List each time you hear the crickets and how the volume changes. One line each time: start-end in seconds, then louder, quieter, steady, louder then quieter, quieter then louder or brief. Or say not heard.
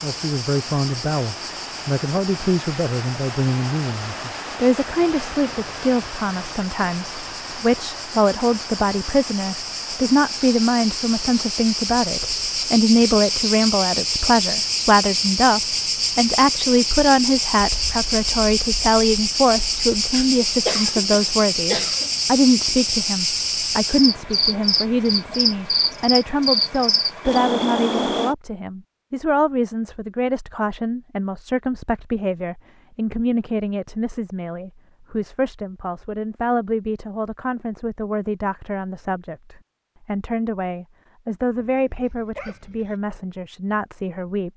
0.0-28.4 louder.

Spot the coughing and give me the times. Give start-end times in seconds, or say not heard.
20.1-22.1.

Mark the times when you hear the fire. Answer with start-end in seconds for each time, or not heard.
not heard.